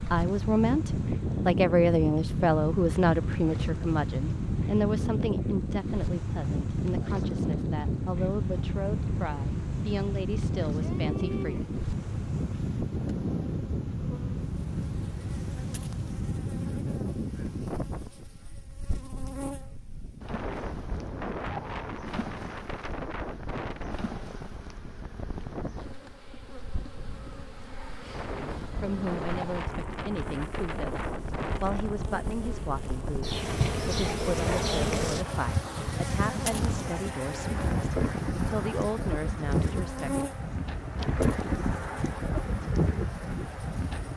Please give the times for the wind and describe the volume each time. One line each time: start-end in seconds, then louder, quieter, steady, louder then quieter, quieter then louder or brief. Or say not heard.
0.0-44.1 quieter then louder.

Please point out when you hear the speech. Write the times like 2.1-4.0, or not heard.
0.0-11.7, 28.4-40.3.